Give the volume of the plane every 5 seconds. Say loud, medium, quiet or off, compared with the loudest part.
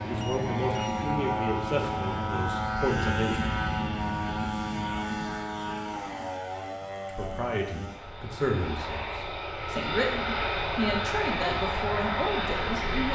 loud, medium, loud.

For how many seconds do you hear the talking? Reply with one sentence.
The talking can be heard for 9 seconds in total.